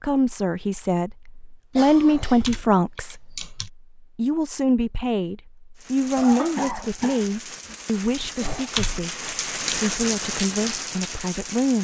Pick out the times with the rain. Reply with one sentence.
The rain can be heard from 5.8 to 11.7 s.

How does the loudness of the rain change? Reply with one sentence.
The volume of the rain goes up.